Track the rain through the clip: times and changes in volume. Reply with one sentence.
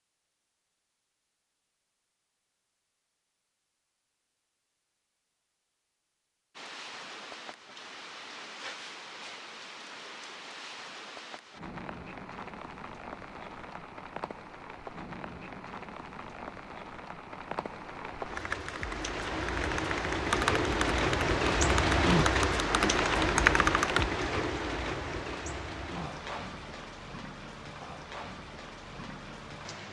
You can hear the rain from 6.5 to 29.8 s, getting louder then quieter.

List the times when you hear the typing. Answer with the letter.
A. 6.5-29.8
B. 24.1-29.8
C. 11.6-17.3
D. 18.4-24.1
D.